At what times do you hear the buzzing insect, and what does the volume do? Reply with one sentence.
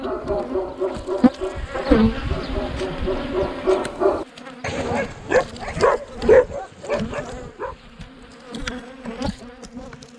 The buzzing insect can be heard from 0.0 to 10.1 s, getting quieter.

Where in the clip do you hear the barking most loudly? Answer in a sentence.
The loudest moment of the barking is at 6 seconds.